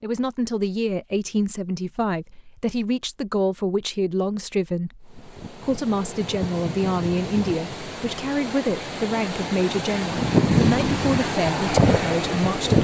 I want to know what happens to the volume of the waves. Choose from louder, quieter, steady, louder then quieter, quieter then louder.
louder.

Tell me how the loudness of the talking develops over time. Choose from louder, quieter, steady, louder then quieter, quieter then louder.
steady.